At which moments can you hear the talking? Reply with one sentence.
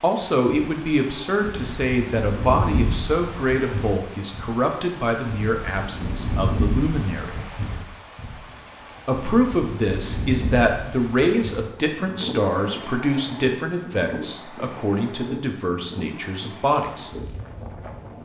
The talking can be heard from 0.0 to 7.4 s and from 9.1 to 17.1 s.